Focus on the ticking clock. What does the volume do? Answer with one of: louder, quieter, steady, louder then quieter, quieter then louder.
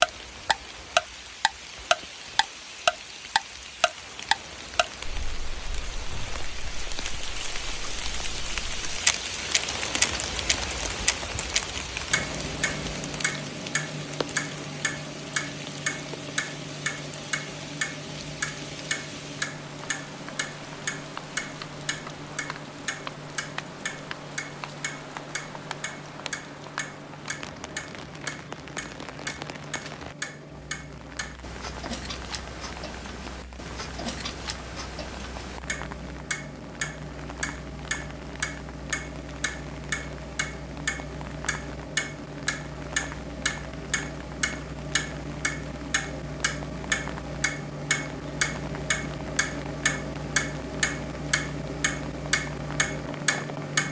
quieter then louder.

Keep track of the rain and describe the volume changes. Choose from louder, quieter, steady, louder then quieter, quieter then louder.
quieter.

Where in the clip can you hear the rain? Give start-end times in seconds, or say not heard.
0.0-53.8.